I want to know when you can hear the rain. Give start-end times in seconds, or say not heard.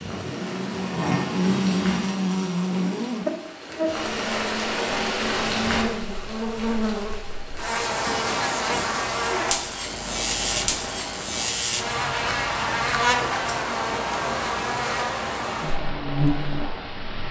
0.0-17.2.